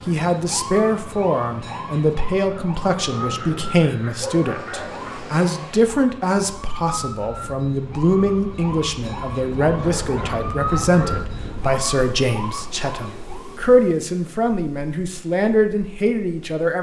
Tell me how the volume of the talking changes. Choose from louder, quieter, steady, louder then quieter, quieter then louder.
steady.